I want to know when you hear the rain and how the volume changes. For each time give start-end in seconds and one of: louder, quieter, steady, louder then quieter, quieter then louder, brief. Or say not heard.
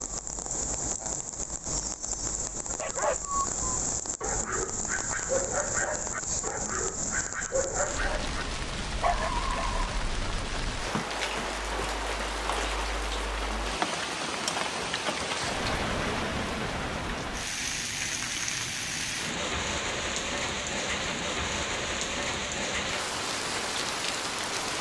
0.0-24.7 steady.